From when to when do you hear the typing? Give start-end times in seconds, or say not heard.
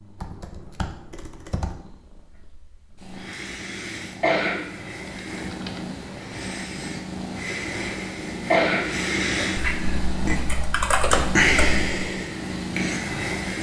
0.2-1.8, 5.0-6.3, 9.6-11.9.